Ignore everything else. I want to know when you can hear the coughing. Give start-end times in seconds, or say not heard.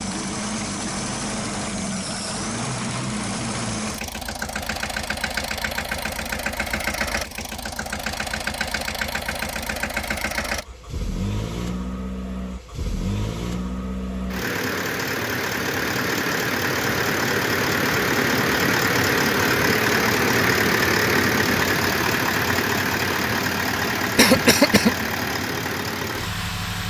24.1-24.9.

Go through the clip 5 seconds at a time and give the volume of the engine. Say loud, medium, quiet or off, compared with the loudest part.
medium, medium, medium, loud, loud, medium.